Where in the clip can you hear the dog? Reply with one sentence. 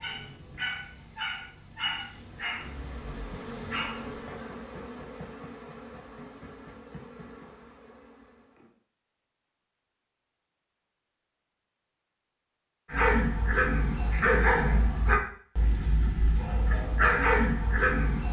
You can hear the dog from 0.0 to 4.2 s and from 12.9 to 18.2 s.